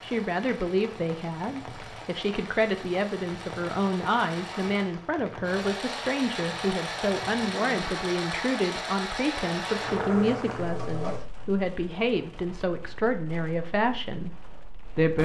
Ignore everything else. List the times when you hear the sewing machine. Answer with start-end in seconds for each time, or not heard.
0.0-11.2.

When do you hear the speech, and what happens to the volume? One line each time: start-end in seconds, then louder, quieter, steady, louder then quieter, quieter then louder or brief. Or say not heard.
0.0-15.2 steady.